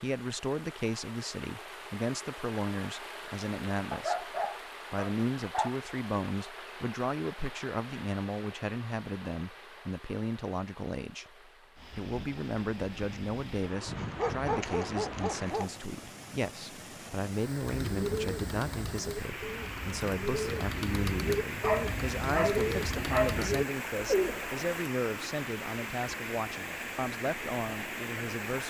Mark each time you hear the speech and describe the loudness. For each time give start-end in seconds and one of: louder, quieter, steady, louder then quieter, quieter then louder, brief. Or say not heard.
0.0-11.3 steady
11.9-28.6 steady.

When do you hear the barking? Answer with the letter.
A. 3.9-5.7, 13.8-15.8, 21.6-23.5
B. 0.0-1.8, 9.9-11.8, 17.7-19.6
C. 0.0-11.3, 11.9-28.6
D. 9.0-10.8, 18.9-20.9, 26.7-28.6
A.